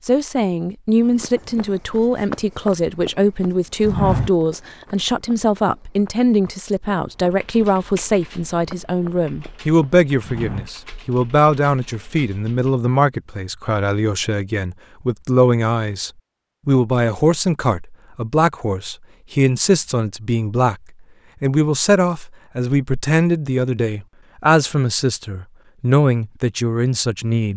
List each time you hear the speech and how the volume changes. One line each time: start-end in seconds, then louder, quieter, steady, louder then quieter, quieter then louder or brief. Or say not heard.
0.1-20.8 steady
21.4-27.5 steady.